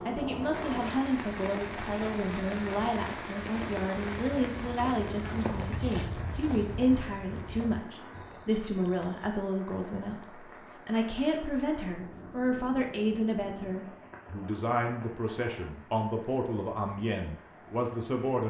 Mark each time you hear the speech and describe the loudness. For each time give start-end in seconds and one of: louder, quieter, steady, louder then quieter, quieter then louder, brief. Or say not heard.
0.1-18.4 steady.